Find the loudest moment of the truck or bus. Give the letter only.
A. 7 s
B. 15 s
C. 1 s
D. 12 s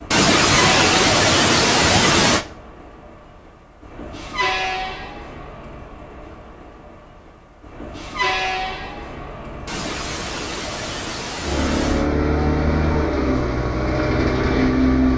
B.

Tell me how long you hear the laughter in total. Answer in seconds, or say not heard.
5 s.